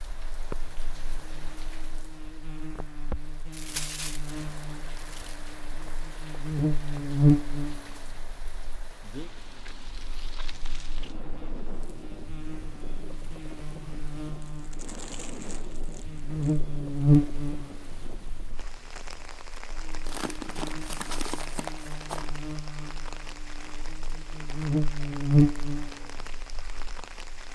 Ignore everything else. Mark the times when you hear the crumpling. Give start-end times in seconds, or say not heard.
3.5-5.4, 14.4-16.6, 20.1-22.2.